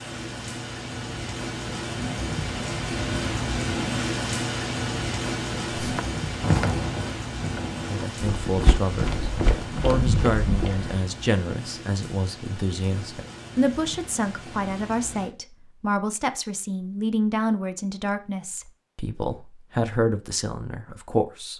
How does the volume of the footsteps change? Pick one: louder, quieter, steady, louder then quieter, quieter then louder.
quieter then louder.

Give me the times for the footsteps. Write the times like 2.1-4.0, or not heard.
5.7-10.9.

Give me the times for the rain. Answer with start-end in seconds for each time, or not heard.
0.0-15.3.